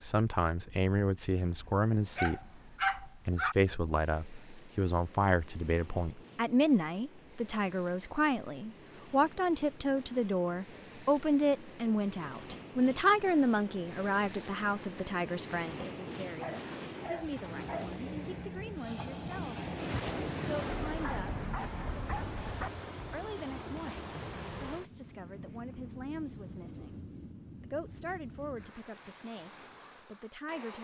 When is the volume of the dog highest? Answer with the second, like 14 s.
3 s.